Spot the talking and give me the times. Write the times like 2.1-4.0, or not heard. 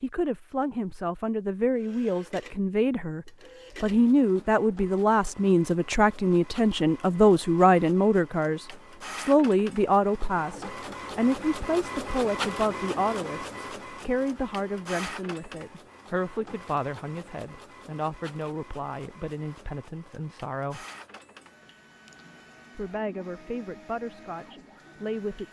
0.0-20.9, 22.8-25.4.